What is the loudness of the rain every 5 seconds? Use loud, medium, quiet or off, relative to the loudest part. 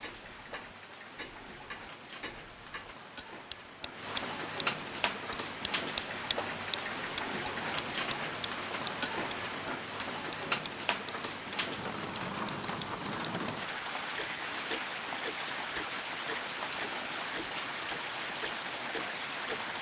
medium, loud, loud, loud.